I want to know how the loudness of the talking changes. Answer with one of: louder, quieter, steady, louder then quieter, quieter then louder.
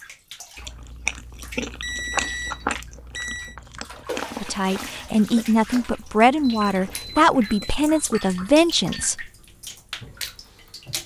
steady.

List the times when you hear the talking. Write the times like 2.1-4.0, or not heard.
4.4-9.2.